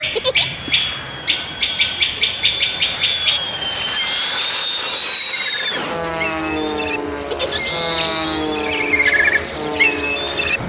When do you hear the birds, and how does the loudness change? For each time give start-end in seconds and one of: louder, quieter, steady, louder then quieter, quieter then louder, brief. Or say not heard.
0.0-10.6 quieter then louder.